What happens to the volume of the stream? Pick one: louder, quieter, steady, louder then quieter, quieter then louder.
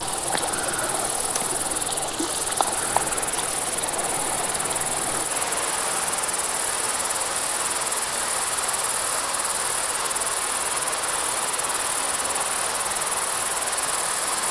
steady.